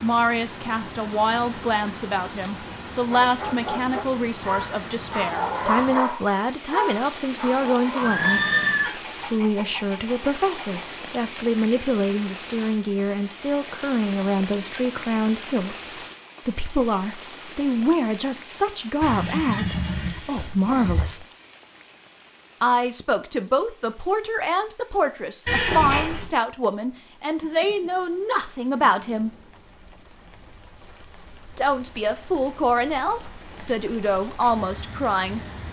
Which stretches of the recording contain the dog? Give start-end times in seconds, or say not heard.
3.0-10.8.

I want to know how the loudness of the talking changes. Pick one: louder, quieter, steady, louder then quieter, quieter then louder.
steady.